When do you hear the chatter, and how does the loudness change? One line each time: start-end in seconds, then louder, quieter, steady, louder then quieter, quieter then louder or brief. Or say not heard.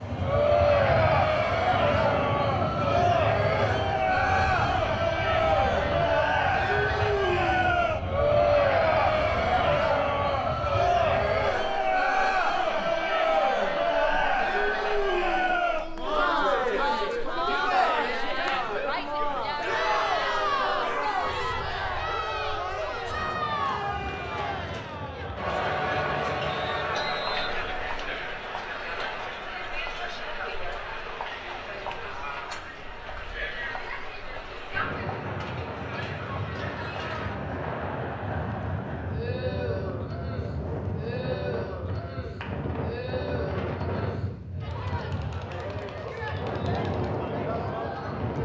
0.0-48.4 quieter.